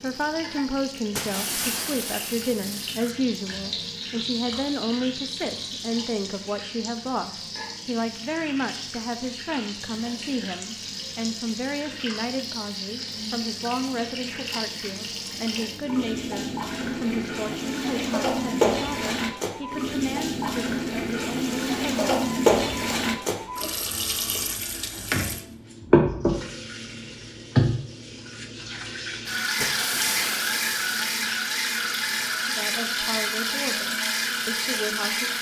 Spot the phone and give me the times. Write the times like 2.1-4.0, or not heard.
not heard.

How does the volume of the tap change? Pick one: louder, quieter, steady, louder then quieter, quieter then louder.
louder.